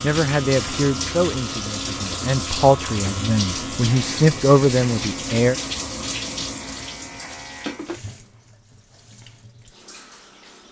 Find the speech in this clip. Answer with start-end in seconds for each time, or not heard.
0.0-5.5.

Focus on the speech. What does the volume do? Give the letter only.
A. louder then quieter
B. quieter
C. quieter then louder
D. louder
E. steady
C.